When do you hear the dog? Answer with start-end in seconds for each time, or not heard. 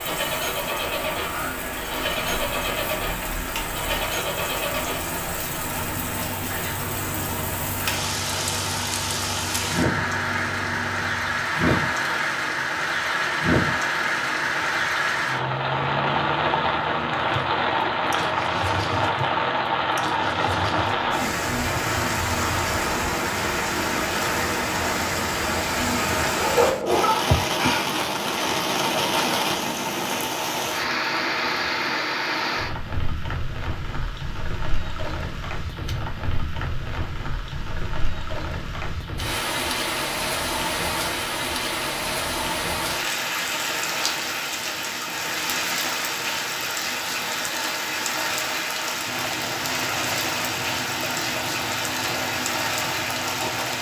26.4-27.9.